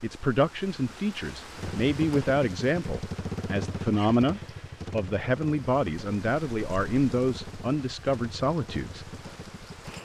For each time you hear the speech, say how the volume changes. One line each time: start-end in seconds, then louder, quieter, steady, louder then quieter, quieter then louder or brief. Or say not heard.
0.0-9.1 steady.